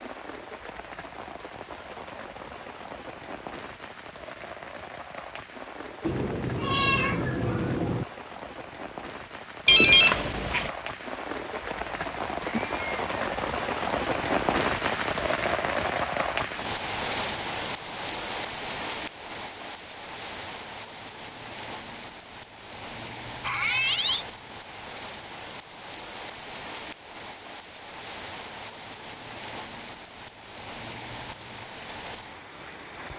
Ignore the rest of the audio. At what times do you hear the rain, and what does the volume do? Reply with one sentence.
The rain can be heard from 0.0 to 33.1 s, getting louder then quieter.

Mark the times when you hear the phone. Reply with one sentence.
You can hear the phone from 9.7 to 10.7 s.